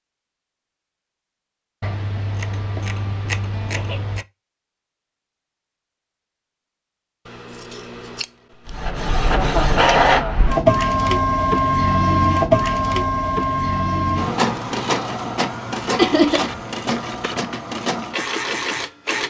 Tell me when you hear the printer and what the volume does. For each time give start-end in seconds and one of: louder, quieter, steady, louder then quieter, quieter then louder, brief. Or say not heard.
8.7-19.2 quieter.